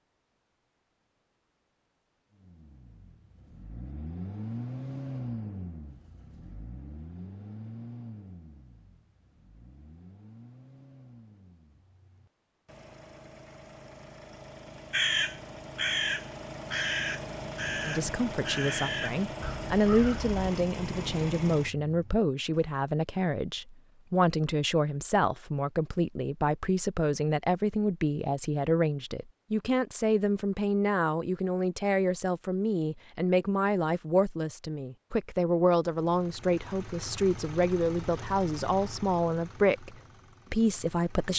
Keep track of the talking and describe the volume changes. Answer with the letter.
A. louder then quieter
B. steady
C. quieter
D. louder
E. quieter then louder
B.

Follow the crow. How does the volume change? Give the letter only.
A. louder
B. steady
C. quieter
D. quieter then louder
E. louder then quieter
C.